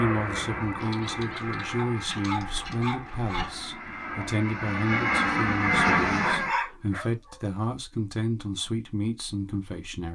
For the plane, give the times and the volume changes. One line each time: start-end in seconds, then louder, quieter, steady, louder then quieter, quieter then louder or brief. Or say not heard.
0.0-6.5 quieter then louder.